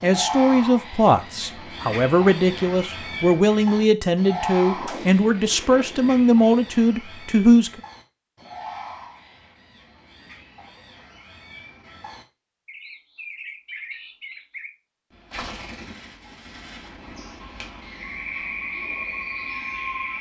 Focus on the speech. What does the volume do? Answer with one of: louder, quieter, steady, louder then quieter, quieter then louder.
steady.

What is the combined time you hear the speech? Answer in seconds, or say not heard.
8 s.